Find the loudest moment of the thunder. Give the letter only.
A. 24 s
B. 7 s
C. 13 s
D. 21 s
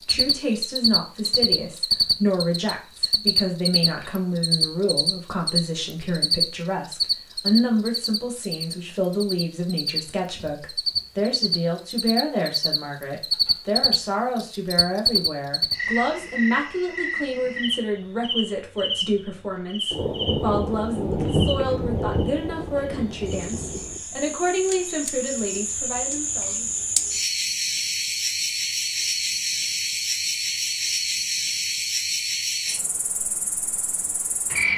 D.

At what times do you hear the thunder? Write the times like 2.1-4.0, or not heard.
19.9-24.0.